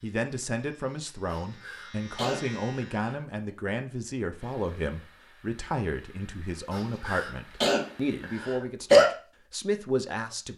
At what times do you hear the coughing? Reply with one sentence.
You can hear the coughing from 1.3 to 3.2 s and from 6.7 to 9.1 s.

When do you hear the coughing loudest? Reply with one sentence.
The volume of the coughing peaks at 9 seconds.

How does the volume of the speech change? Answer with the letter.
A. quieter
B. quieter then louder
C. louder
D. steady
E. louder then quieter
D.